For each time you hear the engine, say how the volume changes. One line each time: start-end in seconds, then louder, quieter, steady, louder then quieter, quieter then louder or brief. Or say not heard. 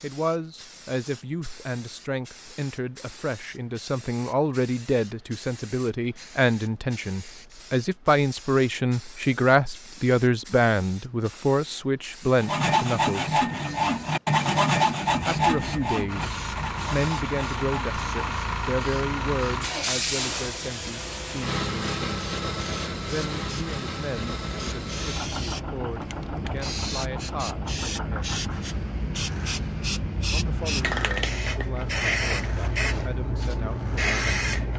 16.1-34.7 quieter.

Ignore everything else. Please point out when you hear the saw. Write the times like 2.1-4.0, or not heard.
12.4-18.4.